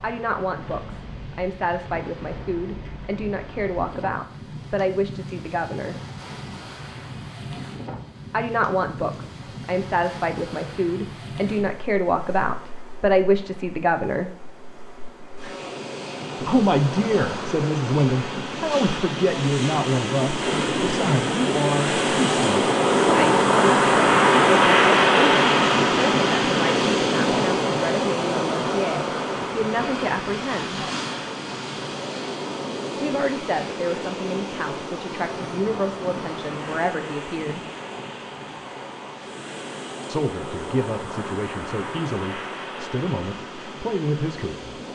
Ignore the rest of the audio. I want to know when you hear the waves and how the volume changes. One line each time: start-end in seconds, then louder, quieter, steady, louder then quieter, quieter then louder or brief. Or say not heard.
0.0-44.9 louder then quieter.